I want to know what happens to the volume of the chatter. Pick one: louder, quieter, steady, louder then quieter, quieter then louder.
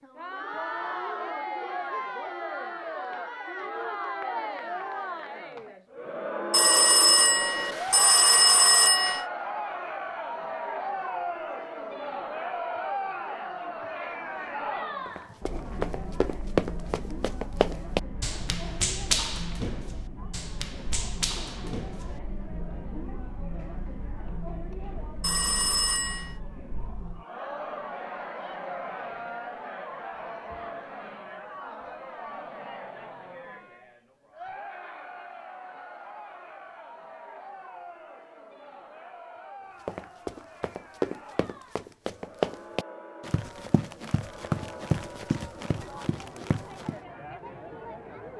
quieter.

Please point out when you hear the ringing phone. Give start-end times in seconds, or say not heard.
6.5-9.2, 25.2-26.4.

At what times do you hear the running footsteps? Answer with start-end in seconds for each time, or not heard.
15.1-22.2, 39.9-47.0.